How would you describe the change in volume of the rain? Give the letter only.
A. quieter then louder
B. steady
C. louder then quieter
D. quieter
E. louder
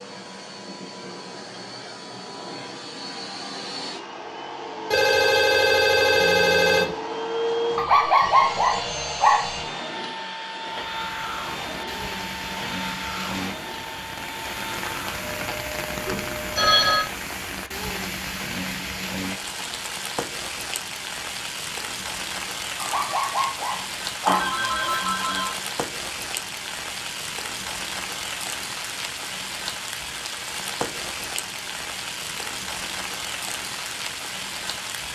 B.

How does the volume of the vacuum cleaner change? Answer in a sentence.
The loudness of the vacuum cleaner goes up, then down.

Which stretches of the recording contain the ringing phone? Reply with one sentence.
You can hear the ringing phone from 4.9 to 6.9 s, from 16.1 to 17.1 s and from 24.2 to 25.6 s.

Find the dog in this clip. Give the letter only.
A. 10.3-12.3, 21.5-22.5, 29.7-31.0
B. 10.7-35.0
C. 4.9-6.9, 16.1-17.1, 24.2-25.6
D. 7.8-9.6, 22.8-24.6
D.